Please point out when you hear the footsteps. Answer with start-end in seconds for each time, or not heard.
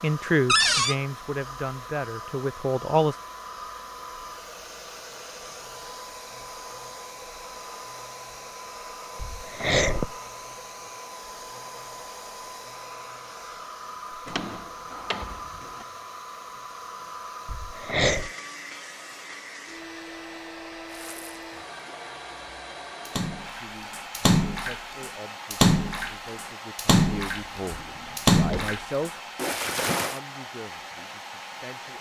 not heard.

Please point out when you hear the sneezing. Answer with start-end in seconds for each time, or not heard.
9.2-10.2, 17.4-18.3.